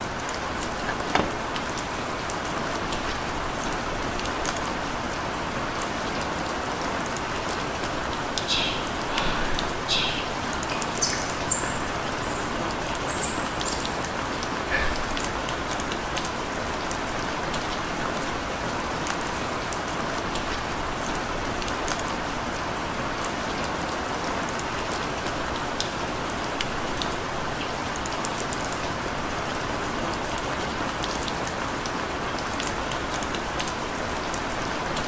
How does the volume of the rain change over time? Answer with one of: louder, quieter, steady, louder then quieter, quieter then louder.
steady.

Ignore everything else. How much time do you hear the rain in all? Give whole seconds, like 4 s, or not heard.
35 s.